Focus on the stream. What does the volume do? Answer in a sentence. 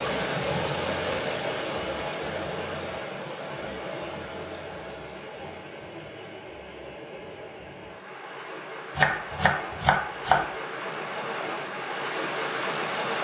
The loudness of the stream goes down, then up.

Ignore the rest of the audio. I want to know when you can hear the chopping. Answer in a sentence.
You can hear the chopping from 8.9 to 10.6 s.